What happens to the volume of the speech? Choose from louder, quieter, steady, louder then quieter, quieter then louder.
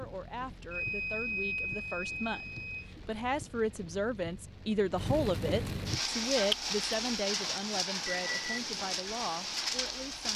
louder then quieter.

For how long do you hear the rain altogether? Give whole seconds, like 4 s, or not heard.
10 s.